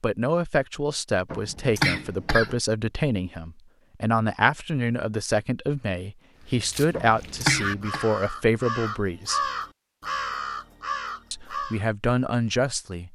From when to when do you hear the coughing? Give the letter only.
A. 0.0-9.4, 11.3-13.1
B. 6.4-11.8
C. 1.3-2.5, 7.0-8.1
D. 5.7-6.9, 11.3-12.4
C.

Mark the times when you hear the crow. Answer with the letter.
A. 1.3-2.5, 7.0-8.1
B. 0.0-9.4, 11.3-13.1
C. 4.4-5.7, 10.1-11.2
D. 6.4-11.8
D.